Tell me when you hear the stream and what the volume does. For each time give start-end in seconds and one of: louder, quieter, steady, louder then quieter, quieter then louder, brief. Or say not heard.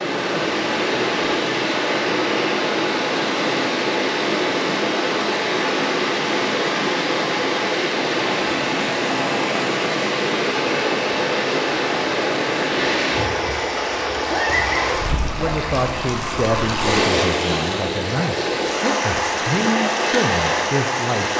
0.0-21.3 steady.